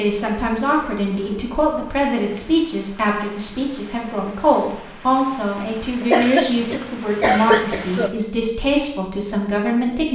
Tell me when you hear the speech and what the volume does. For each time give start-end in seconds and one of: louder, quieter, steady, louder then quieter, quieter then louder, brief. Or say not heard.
0.0-10.1 steady.